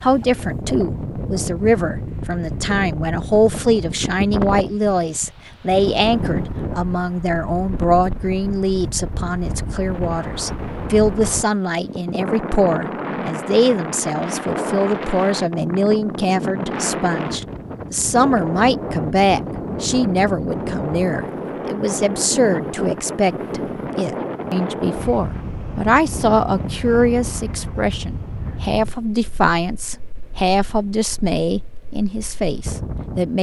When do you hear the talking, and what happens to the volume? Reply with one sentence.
You can hear the talking from 0.0 to 33.3 s, at a steady volume.